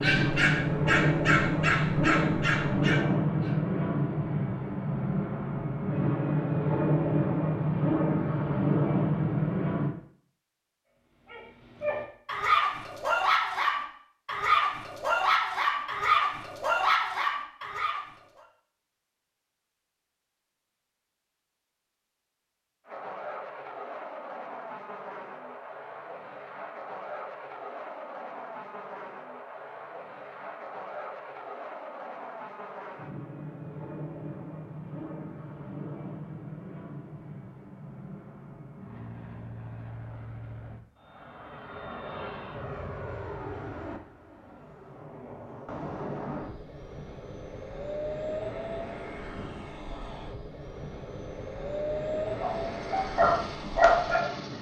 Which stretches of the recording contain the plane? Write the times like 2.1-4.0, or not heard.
0.0-9.9, 22.9-54.5.